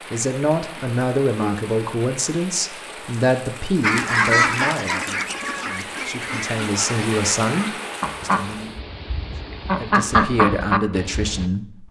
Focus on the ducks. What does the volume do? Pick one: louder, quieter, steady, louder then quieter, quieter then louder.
quieter then louder.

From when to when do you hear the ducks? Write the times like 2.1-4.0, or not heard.
3.8-11.4.